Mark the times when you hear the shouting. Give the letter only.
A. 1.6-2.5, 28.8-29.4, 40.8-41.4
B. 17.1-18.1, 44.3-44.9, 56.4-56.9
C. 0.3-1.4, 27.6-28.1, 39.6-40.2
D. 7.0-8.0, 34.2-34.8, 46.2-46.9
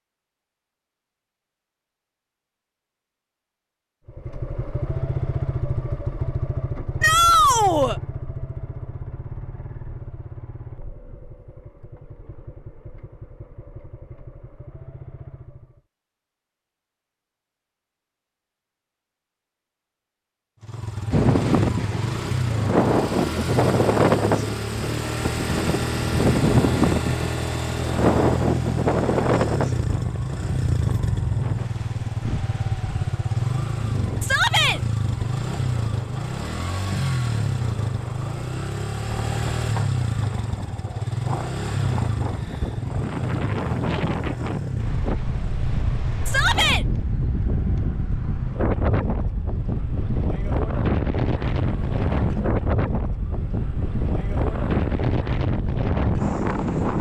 D.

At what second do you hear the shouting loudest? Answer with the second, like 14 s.
7 s.